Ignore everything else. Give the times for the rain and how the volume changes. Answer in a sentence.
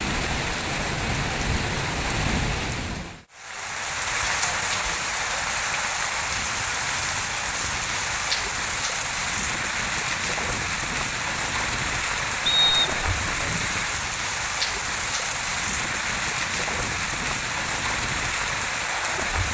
You can hear the rain from 0.0 to 19.4 s, at a steady volume.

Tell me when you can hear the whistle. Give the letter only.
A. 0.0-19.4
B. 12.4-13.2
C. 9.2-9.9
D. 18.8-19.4
B.